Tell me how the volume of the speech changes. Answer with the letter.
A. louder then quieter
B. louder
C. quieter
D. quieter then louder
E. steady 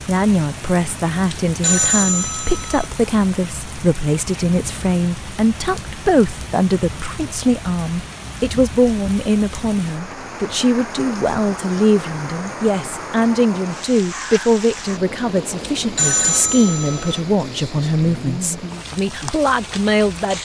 E.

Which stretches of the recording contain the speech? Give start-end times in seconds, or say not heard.
0.1-20.3.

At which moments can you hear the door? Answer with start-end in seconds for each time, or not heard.
not heard.